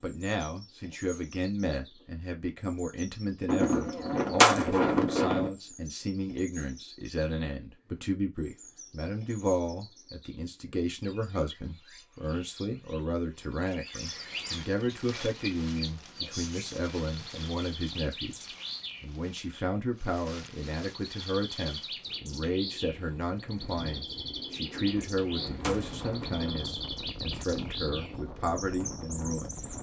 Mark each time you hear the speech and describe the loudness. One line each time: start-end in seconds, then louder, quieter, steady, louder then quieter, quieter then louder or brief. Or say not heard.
0.0-29.6 steady.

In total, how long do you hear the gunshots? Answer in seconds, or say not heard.
4 s.